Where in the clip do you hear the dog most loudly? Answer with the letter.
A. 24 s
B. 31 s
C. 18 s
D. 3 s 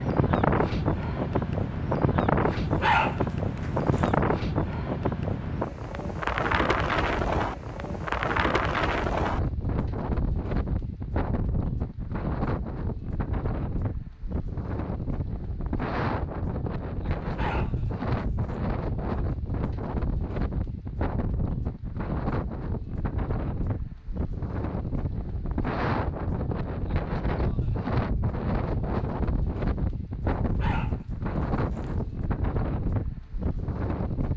D.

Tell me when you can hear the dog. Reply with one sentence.
You can hear the dog from 2.5 to 4.1 s, from 17.2 to 18.6 s and from 30.4 to 32.1 s.